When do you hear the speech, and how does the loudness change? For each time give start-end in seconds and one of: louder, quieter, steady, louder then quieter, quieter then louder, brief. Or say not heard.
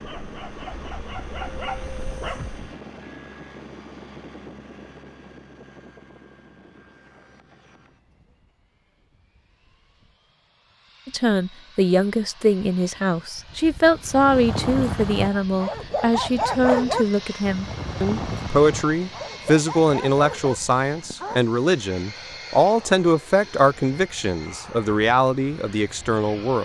11.1-26.6 steady.